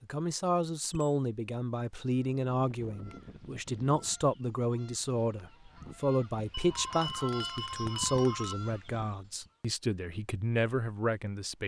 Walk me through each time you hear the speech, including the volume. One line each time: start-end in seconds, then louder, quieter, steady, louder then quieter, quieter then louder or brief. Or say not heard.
0.0-11.6 steady.